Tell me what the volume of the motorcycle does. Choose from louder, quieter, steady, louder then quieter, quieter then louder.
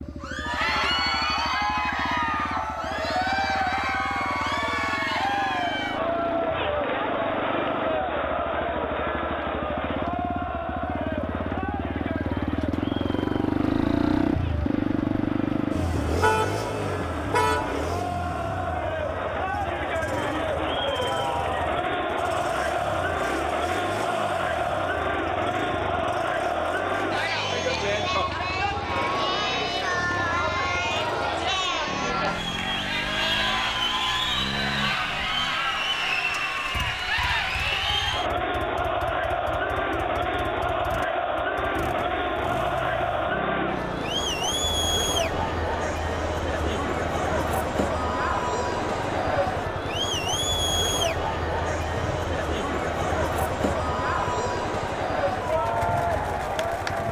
louder then quieter.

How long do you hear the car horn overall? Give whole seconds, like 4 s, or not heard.
2 s.